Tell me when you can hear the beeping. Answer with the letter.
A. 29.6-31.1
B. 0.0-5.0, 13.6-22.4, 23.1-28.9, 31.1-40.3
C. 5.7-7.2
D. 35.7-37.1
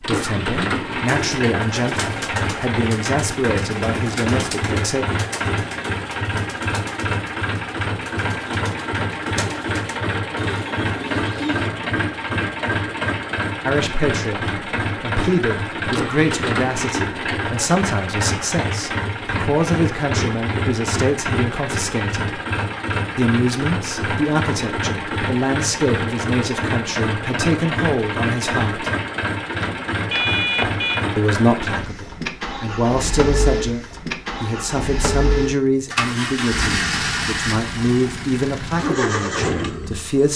A.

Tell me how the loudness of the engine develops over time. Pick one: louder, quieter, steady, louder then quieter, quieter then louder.
steady.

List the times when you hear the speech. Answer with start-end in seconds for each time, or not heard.
0.0-5.0, 13.6-22.4, 23.1-28.9, 31.1-40.3.